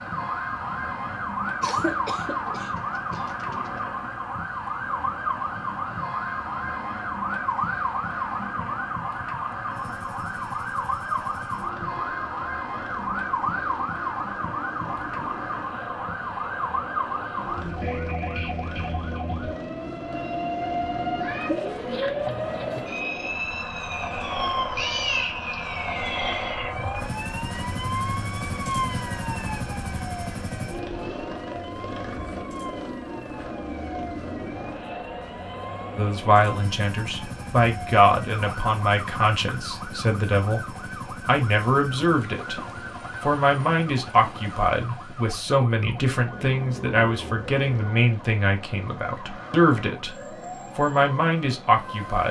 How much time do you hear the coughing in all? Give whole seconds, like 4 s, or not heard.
2 s.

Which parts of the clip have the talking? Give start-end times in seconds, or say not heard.
36.0-42.6, 43.2-50.1, 50.8-52.2.